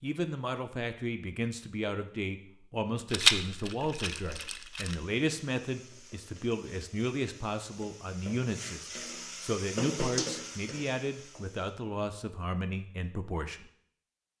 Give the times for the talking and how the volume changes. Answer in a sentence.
The talking can be heard from 0.0 to 13.7 s, at a steady volume.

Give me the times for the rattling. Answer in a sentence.
The rattling can be heard from 3.1 to 5.0 s.